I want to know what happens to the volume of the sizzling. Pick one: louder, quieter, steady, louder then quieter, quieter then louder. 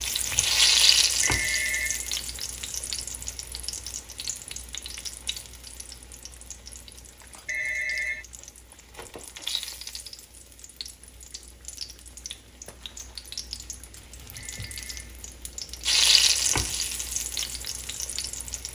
quieter then louder.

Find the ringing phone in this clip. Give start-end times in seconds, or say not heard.
1.2-2.1, 7.5-8.2, 14.3-15.1.